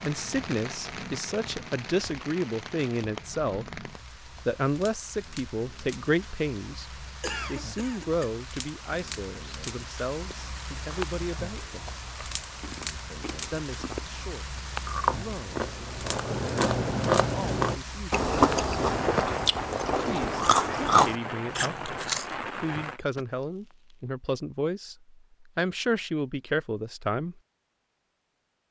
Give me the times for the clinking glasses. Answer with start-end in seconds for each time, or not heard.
not heard.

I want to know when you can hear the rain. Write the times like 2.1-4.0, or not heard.
0.0-23.0.